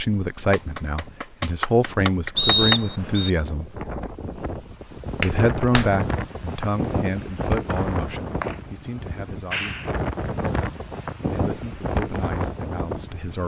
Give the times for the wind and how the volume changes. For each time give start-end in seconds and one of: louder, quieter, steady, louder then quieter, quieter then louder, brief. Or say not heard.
0.0-13.4 louder.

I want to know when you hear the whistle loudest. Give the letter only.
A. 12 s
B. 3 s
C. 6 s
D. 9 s
B.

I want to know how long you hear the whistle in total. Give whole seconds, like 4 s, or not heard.
2 s.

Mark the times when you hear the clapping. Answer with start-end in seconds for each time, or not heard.
0.5-2.8, 5.2-5.9, 9.5-9.9.